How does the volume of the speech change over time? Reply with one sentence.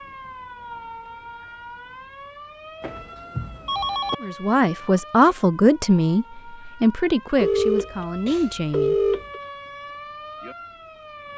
The volume of the speech goes down.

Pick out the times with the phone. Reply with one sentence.
You can hear the phone from 2.8 to 4.2 s and from 7.3 to 9.4 s.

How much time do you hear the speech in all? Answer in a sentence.
You can hear the speech for 5 seconds altogether.